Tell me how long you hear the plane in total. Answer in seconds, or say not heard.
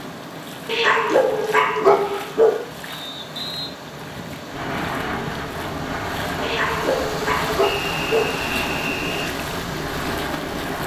6 s.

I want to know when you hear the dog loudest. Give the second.
2 s.